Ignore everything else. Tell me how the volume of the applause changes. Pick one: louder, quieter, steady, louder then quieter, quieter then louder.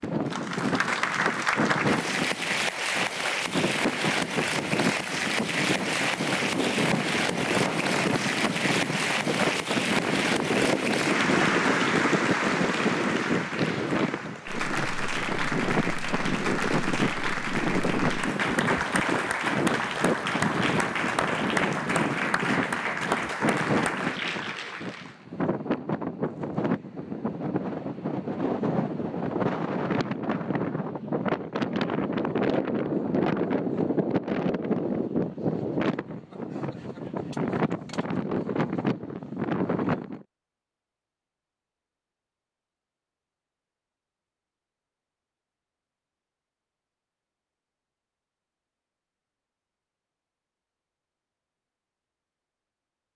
steady.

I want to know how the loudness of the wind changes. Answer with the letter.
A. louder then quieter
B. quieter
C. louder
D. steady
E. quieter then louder
D.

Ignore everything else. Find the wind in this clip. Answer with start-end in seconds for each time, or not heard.
0.0-40.2.